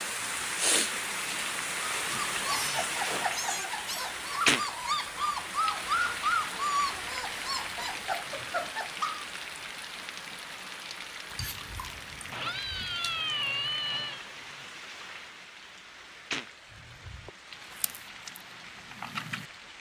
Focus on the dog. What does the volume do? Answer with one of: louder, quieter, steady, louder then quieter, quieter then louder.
louder then quieter.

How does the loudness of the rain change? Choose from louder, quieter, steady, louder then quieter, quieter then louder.
quieter.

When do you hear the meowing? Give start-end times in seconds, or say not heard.
2.5-4.2, 12.3-14.2.